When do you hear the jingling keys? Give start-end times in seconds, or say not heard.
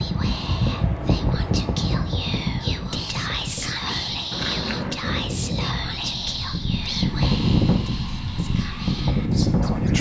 4.3-5.0.